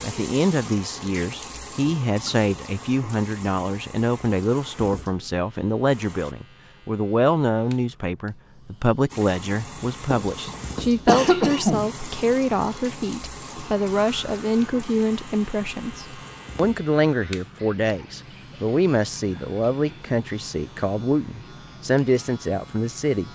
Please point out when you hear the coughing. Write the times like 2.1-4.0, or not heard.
10.2-11.9.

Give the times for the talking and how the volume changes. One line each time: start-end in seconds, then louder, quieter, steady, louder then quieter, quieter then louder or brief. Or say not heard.
0.0-23.2 steady.